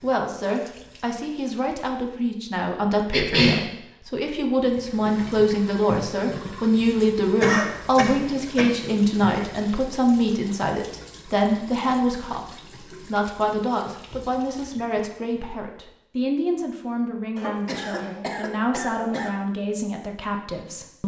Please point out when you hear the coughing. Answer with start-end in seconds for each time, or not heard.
3.1-3.6, 7.4-8.7, 17.4-19.3.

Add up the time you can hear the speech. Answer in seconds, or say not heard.
21 s.